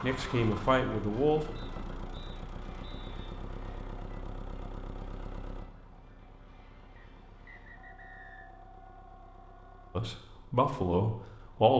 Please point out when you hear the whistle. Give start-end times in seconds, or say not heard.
1.6-3.1, 7.0-8.5.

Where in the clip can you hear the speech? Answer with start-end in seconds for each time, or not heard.
0.0-1.5, 9.9-11.7.